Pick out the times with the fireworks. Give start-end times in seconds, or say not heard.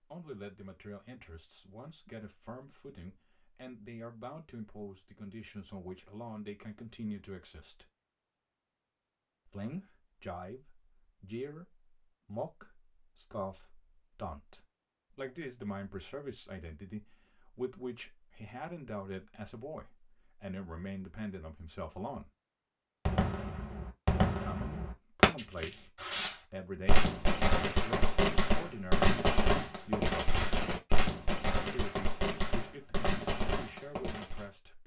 23.1-34.5.